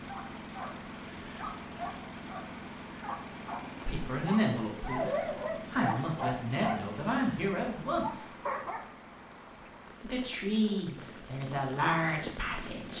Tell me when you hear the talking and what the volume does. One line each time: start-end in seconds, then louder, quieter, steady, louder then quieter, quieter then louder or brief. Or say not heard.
3.9-8.3 quieter then louder
10.0-12.9 brief.